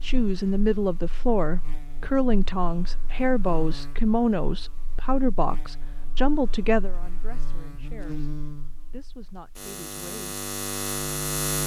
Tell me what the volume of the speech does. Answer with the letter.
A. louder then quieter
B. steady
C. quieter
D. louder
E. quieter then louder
C.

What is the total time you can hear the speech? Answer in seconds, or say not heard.
10 s.